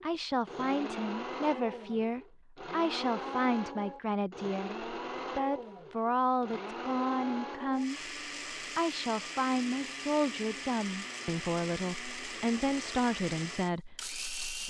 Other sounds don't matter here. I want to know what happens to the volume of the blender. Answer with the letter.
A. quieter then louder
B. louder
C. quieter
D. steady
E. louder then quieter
D.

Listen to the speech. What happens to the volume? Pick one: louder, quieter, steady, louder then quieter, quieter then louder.
steady.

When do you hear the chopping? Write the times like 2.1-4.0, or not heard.
not heard.